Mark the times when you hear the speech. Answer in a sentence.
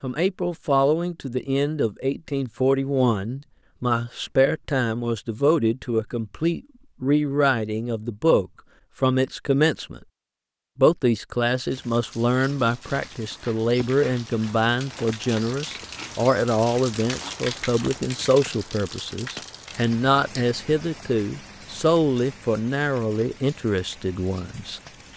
The speech can be heard from 0.0 to 10.0 s and from 10.8 to 24.8 s.